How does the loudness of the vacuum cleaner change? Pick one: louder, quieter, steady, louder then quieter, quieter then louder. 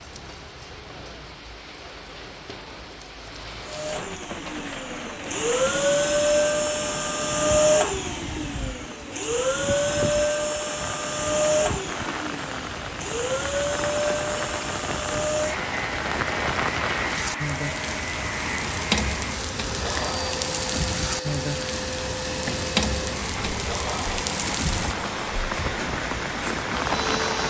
quieter.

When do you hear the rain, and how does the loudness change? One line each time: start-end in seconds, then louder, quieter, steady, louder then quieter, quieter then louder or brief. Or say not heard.
0.0-27.4 louder.